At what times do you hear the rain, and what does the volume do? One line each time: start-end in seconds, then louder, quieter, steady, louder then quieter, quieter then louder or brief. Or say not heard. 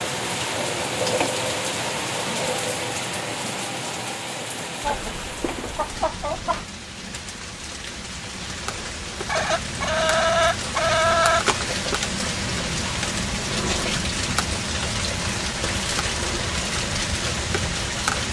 0.0-18.2 quieter then louder.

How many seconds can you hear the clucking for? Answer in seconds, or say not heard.
4 s.